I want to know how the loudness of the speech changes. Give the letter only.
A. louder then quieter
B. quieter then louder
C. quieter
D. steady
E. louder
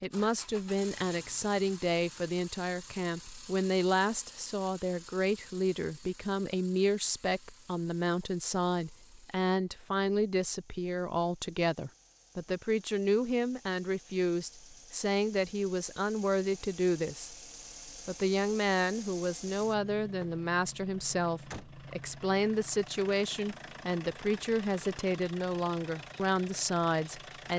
D.